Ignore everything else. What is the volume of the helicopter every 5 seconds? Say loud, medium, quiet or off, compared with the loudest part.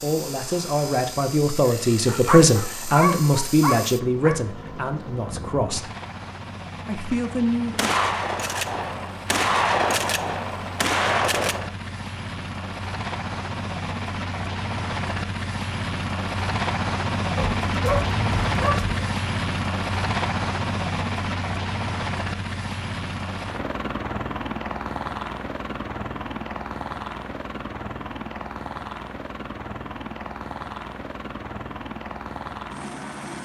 medium, medium, medium, loud, loud, medium, medium.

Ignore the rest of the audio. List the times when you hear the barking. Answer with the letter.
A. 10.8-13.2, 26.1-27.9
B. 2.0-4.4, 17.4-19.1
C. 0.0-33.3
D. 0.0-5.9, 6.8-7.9
B.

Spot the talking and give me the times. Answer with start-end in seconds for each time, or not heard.
0.0-5.9, 6.8-7.9.